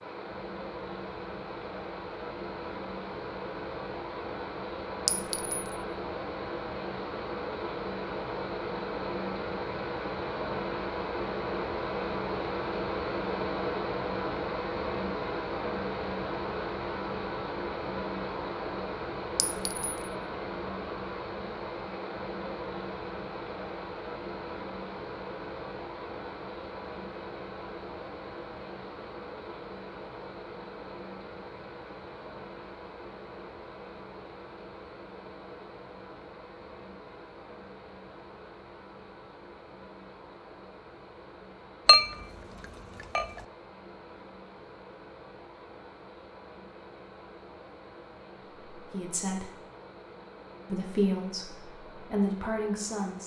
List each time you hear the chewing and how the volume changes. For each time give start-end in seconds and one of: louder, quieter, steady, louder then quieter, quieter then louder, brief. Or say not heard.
not heard.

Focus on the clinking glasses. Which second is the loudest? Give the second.
42 s.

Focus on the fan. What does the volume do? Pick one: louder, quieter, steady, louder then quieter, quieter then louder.
quieter.